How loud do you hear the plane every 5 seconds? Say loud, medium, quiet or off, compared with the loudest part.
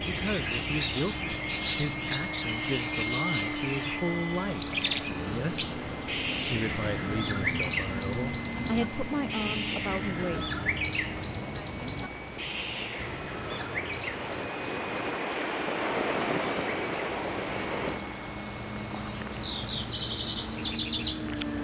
loud, loud, medium, medium, loud.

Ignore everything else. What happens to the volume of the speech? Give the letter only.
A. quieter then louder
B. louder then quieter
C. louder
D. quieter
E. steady
E.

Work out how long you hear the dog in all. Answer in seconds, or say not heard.
not heard.